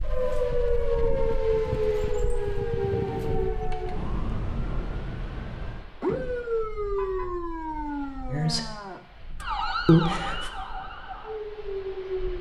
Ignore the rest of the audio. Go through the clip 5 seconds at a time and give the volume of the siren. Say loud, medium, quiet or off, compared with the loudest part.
loud, loud, medium.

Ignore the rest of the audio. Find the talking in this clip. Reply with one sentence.
The talking can be heard from 8.2 to 8.7 s and from 9.8 to 10.5 s.